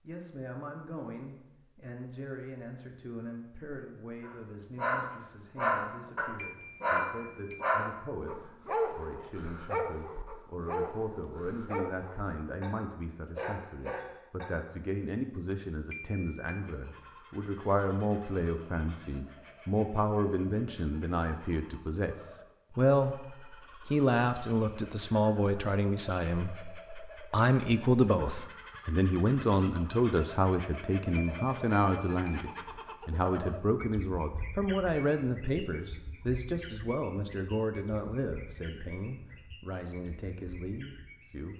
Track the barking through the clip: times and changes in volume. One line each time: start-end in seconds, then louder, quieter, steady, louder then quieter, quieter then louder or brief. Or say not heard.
4.2-14.7 quieter.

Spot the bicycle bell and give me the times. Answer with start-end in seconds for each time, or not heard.
6.3-7.7, 15.9-16.6, 31.1-32.5.